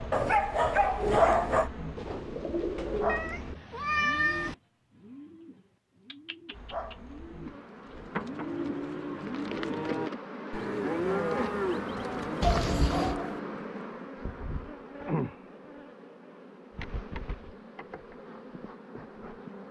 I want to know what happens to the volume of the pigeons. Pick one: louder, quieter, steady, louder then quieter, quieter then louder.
quieter then louder.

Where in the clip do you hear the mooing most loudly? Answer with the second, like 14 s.
11 s.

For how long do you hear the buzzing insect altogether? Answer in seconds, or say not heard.
17 s.